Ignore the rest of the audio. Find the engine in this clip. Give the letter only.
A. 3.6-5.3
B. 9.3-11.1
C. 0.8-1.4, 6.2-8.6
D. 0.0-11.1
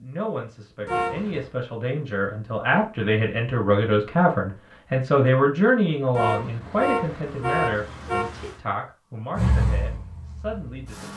B.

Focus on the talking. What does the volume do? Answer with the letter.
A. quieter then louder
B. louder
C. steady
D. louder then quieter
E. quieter
D.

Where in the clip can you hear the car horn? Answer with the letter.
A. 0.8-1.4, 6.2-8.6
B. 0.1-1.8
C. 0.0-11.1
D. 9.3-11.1
A.